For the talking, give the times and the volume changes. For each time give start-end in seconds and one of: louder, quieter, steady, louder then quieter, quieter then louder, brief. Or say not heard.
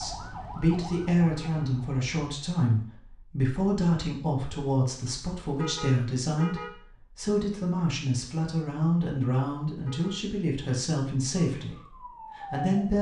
0.0-12.9 steady.